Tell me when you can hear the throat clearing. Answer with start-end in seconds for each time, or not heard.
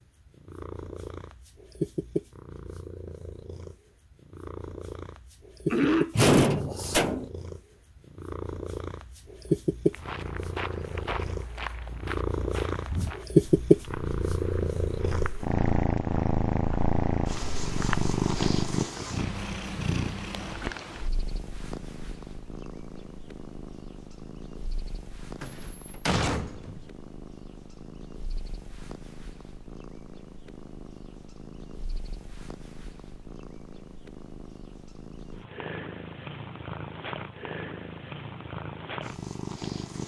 5.7-6.5.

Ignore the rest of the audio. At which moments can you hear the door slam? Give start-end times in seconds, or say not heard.
6.2-7.3, 25.4-26.8.